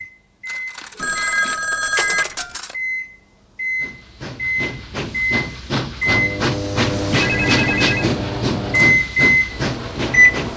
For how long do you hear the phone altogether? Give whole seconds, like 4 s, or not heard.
3 s.